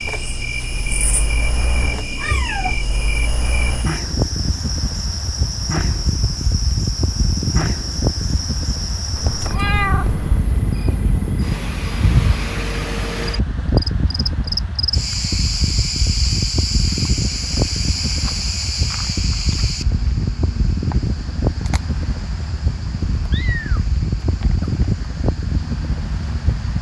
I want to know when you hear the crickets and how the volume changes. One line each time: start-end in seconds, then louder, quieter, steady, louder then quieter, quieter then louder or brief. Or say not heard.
0.0-26.7 quieter.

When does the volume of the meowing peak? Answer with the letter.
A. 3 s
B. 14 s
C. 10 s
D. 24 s
C.